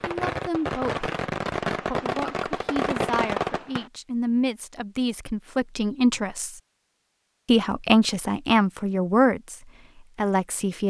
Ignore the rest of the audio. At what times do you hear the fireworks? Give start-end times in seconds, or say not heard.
0.0-3.9.